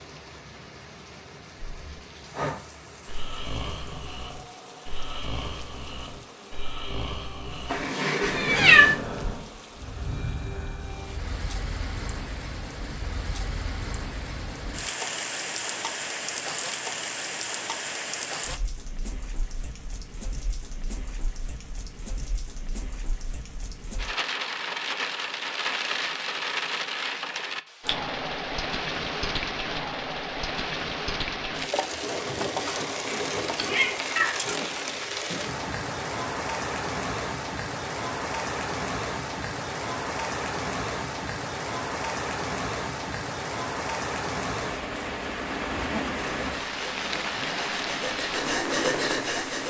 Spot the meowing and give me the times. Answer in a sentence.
The meowing can be heard from 7.7 to 8.9 s and from 32.6 to 34.5 s.